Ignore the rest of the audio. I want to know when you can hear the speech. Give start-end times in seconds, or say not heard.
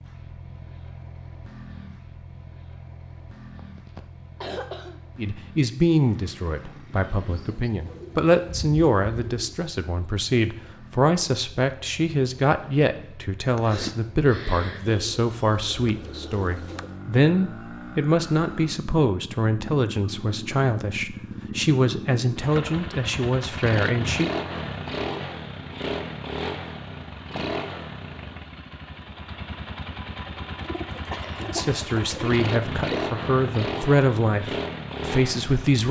5.2-24.3, 31.4-35.8.